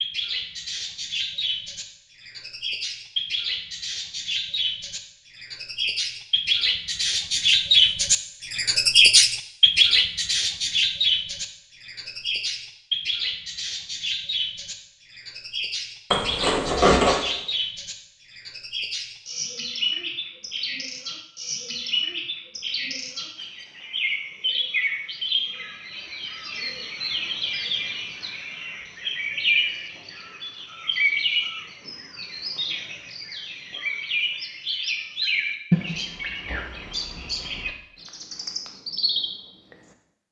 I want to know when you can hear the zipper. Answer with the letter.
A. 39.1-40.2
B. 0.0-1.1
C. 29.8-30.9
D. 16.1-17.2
D.